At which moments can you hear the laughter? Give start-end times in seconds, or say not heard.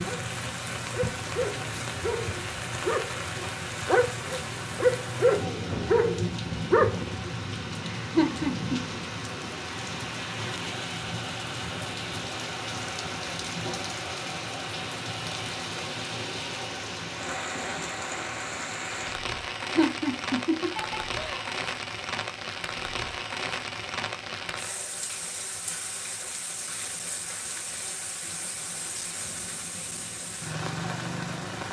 7.8-8.8, 19.6-21.5.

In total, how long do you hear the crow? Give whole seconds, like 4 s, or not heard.
not heard.